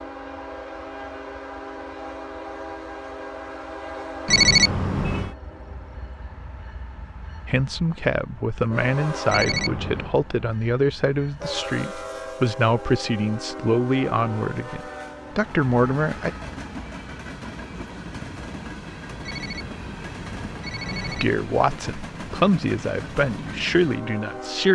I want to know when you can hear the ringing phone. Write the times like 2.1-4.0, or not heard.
4.2-5.3, 9.2-10.2, 19.2-21.2.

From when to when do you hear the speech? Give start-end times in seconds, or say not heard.
7.5-16.3, 21.1-24.7.